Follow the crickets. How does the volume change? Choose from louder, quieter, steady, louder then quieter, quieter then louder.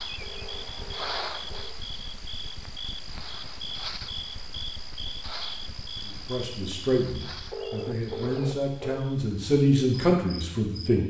quieter.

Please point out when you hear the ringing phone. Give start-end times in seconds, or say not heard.
0.2-1.7, 7.5-9.0.